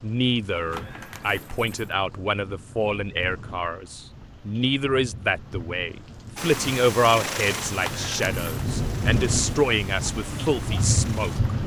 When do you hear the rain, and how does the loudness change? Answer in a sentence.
The rain can be heard from 0.0 to 11.6 s, getting louder.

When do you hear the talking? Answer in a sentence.
The talking can be heard from 0.0 to 11.5 s.